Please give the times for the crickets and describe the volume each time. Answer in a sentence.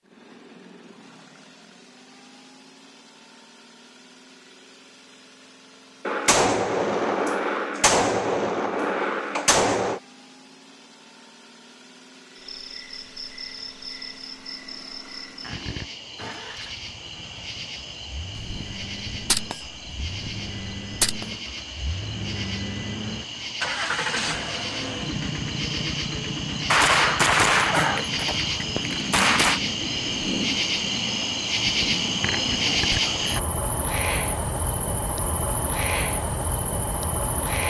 You can hear the crickets from 12.3 to 37.6 s, getting louder.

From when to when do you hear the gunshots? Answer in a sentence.
You can hear the gunshots from 6.0 to 10.0 s, from 18.4 to 21.2 s and from 26.7 to 29.6 s.